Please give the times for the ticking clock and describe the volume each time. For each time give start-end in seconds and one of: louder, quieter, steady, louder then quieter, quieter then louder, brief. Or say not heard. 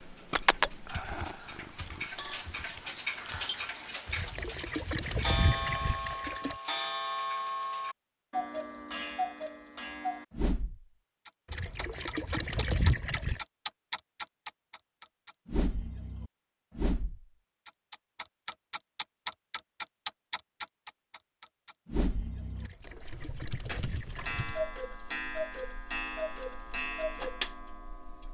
0.0-28.3 steady.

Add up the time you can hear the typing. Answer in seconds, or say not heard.
4 s.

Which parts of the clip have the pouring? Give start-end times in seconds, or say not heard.
4.0-6.5, 11.5-13.4, 22.6-24.4.